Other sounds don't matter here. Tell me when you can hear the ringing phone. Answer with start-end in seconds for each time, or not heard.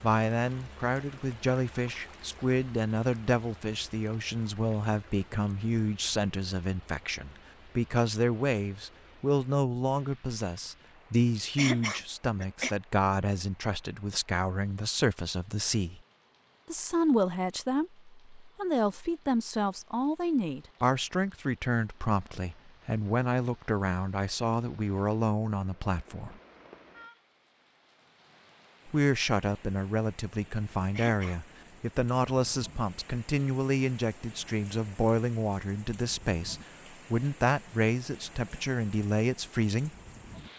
not heard.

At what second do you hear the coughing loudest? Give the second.
12 s.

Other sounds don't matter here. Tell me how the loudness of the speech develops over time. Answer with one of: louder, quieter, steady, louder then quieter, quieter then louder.
steady.